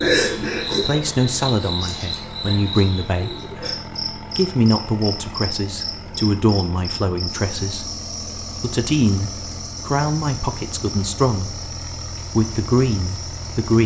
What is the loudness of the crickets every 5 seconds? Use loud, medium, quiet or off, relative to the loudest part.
loud, medium, medium.